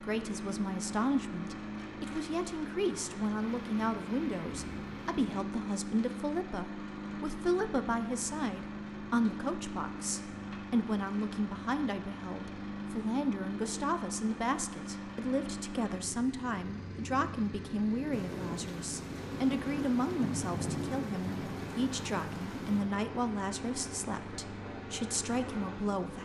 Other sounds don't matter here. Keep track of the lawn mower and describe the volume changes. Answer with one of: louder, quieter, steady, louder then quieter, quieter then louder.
steady.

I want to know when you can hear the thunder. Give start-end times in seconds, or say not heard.
3.4-5.4, 18.1-22.9.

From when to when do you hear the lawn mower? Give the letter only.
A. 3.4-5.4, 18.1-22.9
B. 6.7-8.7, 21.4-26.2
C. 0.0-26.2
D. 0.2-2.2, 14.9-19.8
C.